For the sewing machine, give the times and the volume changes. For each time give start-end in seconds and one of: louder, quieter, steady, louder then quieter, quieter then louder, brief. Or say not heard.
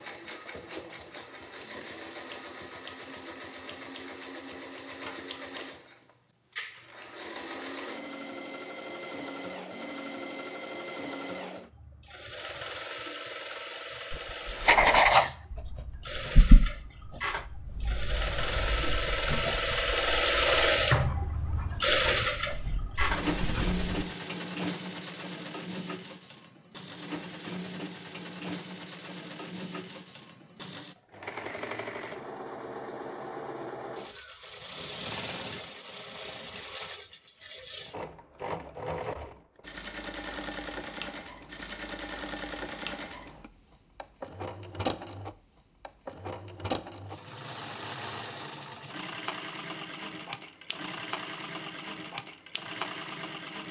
0.0-53.6 louder then quieter.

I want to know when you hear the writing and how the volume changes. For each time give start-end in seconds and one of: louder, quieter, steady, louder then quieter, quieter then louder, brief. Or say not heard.
14.1-24.0 quieter then louder.